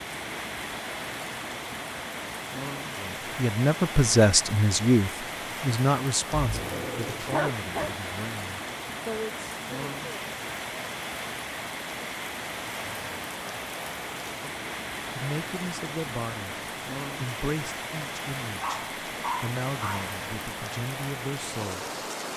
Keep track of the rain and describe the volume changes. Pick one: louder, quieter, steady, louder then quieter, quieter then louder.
steady.